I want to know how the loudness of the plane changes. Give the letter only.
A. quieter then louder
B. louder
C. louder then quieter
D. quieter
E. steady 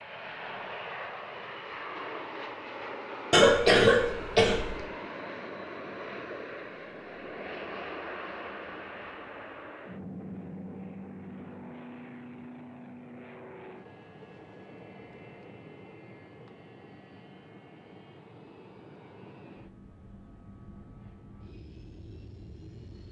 D.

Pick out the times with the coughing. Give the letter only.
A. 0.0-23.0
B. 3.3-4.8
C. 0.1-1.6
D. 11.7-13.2
B.